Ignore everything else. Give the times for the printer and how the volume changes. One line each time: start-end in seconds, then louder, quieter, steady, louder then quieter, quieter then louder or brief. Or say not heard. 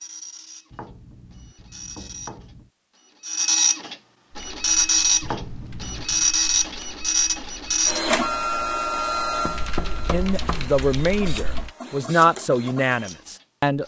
0.0-13.8 louder then quieter.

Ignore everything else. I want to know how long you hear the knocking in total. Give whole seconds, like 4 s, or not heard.
4 s.